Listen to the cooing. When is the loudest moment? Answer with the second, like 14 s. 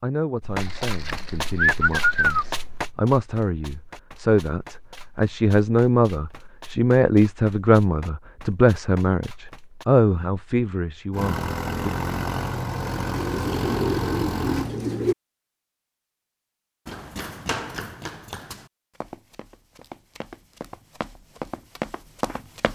2 s.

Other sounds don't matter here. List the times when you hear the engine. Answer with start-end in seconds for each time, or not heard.
11.1-14.7.